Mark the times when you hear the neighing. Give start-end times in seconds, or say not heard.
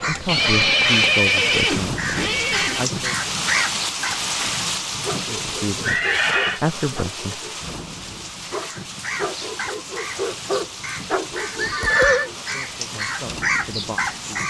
0.2-2.9, 5.8-6.6, 11.6-12.3.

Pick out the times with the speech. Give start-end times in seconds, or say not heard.
0.1-3.1, 5.2-7.8, 12.5-14.4.